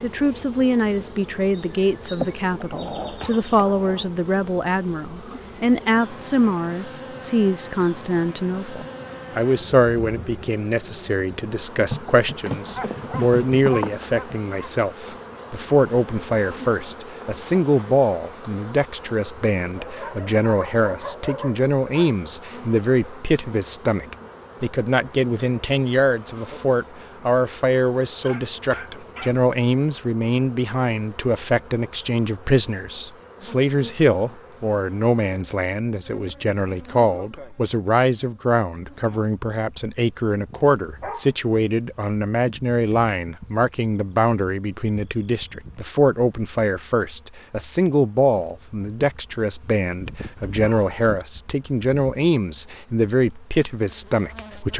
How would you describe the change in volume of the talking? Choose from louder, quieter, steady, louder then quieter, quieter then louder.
steady.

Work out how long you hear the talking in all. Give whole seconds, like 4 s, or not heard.
55 s.